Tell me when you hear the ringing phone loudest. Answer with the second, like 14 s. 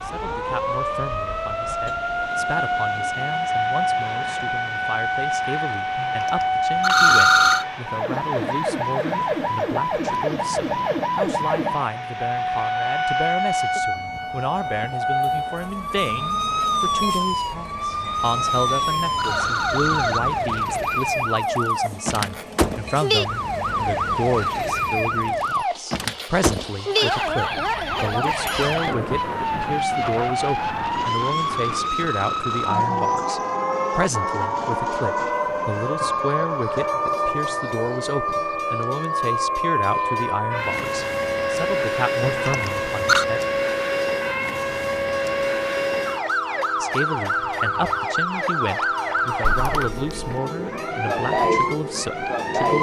7 s.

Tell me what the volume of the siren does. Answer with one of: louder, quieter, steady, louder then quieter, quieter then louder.
steady.